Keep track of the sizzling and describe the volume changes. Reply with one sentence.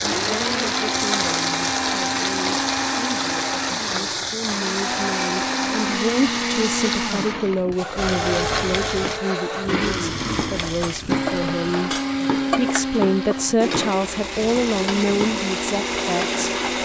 The loudness of the sizzling goes down.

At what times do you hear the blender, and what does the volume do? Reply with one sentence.
You can hear the blender from 0.0 to 16.8 s, at a steady volume.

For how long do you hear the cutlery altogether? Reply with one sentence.
The cutlery can be heard for 2 seconds in total.